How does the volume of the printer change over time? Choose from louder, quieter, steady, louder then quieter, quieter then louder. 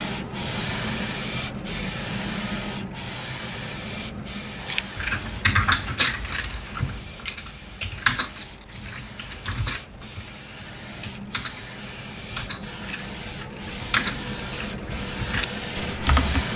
quieter then louder.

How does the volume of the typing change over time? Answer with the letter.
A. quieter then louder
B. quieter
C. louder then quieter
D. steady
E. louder
A.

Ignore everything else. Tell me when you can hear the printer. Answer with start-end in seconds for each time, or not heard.
0.0-16.5.